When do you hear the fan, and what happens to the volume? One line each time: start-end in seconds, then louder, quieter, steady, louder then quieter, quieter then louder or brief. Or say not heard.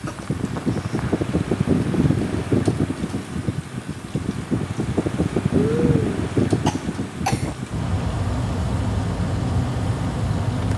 0.0-10.7 steady.